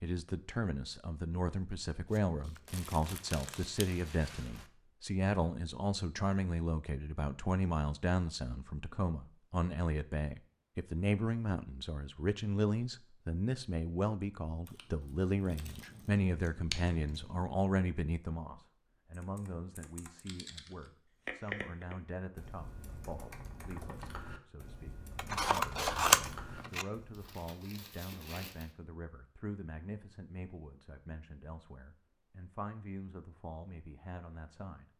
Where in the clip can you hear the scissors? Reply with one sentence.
The scissors can be heard from 2.1 to 3.9 s, from 15.5 to 17.4 s and from 25.1 to 26.9 s.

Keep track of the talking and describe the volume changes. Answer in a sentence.
The loudness of the talking goes down.